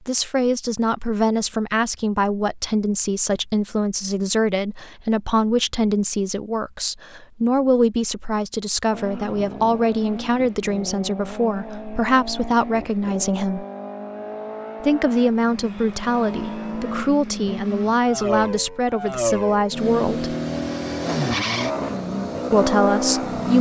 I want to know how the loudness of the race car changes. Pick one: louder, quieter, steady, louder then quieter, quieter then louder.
louder.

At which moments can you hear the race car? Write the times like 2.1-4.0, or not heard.
8.9-23.5.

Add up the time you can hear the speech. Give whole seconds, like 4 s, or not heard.
20 s.